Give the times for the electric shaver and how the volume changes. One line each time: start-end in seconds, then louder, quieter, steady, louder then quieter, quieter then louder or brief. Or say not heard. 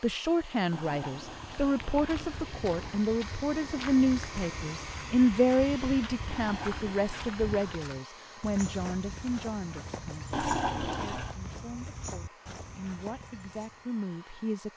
not heard.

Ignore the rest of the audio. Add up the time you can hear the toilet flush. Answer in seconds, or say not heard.
5 s.